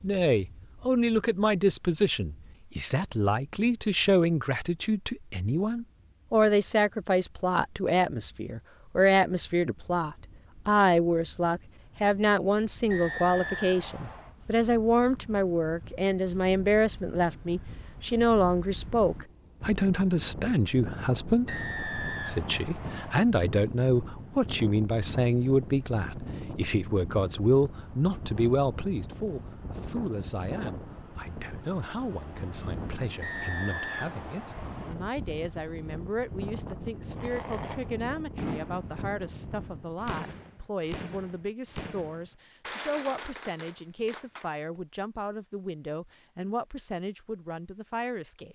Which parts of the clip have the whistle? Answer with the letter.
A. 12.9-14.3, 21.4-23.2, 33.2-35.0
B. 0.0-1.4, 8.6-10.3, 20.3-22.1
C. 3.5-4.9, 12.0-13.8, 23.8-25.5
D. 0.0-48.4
A.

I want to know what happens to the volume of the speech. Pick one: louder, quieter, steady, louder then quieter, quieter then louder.
quieter.